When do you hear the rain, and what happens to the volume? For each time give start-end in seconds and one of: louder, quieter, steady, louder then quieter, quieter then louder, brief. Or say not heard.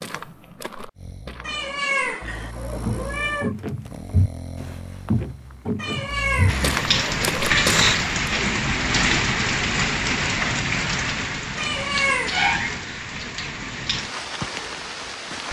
6.5-15.4 quieter.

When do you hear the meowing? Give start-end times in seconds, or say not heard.
1.4-3.5, 5.8-7.6, 11.6-12.6.